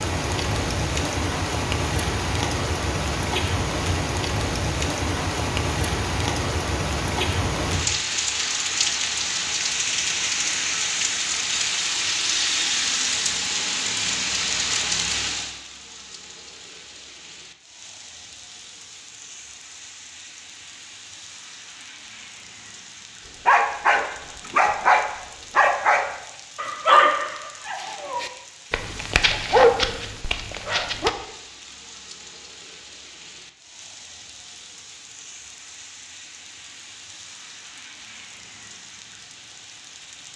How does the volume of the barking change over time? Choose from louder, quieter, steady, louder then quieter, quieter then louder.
quieter then louder.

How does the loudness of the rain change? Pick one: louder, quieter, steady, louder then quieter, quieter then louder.
quieter.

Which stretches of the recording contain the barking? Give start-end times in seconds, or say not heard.
23.4-31.1.